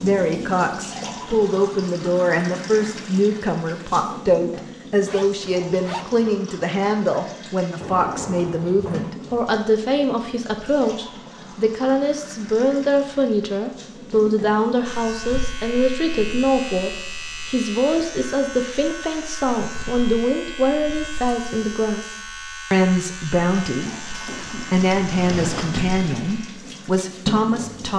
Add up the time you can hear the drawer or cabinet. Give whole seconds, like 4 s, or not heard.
3 s.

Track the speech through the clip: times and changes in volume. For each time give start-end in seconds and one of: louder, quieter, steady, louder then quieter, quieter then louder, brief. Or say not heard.
0.0-27.9 steady.